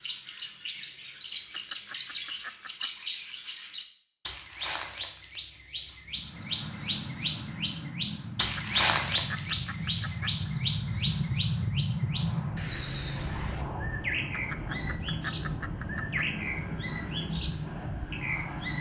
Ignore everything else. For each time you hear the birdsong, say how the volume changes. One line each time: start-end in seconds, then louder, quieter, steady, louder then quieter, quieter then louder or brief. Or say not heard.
0.0-18.7 louder then quieter.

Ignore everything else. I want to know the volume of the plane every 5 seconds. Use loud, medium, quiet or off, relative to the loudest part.
off, medium, loud, loud.